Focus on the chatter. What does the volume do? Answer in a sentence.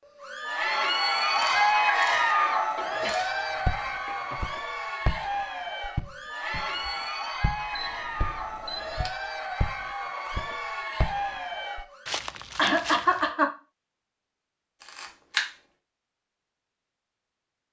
The volume of the chatter goes down.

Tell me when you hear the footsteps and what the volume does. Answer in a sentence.
The footsteps can be heard from 3.6 to 13.3 s, getting quieter then louder.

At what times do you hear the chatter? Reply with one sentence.
The chatter can be heard from 0.1 to 12.1 s.